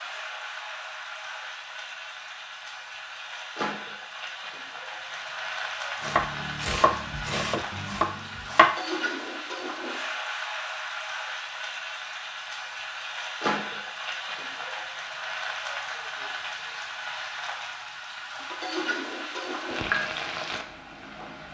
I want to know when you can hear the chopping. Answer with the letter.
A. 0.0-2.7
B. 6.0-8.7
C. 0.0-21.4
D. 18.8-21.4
B.